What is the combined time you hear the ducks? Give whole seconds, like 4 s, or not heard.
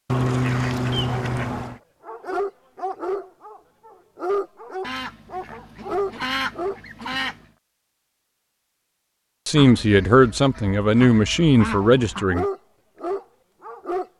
7 s.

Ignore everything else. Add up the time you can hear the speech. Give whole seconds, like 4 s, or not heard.
3 s.